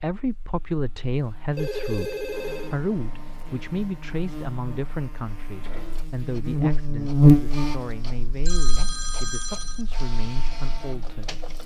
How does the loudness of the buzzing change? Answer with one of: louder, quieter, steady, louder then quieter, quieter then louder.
louder then quieter.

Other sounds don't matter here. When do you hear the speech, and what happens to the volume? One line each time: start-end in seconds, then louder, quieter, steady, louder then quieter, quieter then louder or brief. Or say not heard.
0.0-11.3 quieter.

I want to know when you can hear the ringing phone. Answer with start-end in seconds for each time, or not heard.
1.6-2.8, 8.4-9.9.